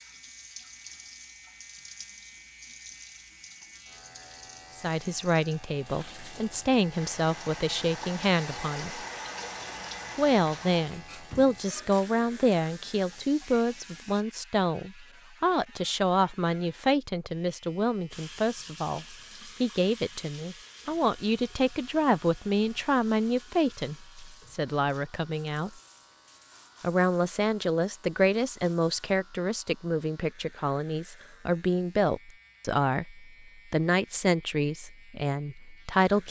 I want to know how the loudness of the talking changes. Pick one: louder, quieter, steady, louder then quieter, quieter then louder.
steady.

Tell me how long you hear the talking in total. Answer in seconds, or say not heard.
29 s.